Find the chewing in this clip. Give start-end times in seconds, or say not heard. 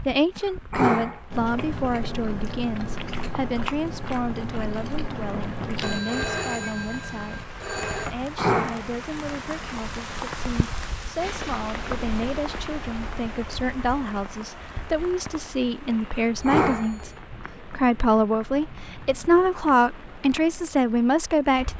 1.3-6.2.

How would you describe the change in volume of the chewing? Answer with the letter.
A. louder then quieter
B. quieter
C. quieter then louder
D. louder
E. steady
E.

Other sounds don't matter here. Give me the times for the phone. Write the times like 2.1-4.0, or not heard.
5.8-8.1, 16.4-17.2.